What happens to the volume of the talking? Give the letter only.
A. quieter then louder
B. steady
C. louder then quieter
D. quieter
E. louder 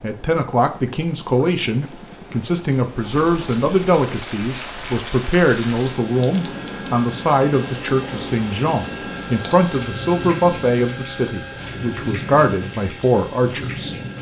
B.